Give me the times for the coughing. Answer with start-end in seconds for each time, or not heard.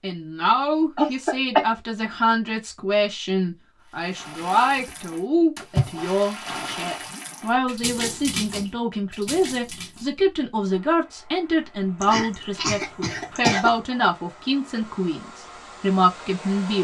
0.9-1.6, 12.0-13.8.